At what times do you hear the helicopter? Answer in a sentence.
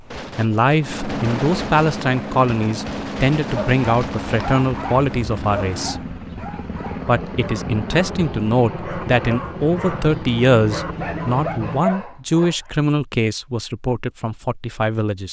You can hear the helicopter from 0.0 to 11.8 s.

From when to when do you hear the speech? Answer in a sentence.
The speech can be heard from 0.3 to 6.2 s and from 7.0 to 15.2 s.